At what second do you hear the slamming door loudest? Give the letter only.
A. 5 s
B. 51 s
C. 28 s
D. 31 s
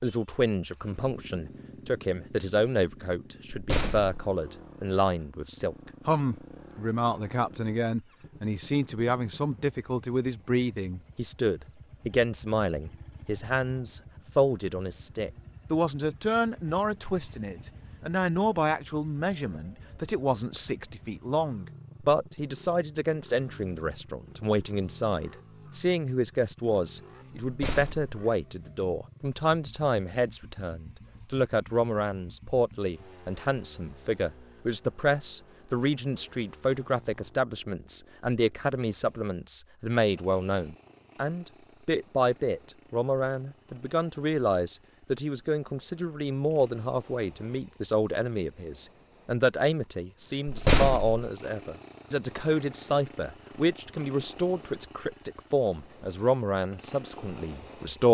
B.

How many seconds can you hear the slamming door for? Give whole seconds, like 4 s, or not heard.
2 s.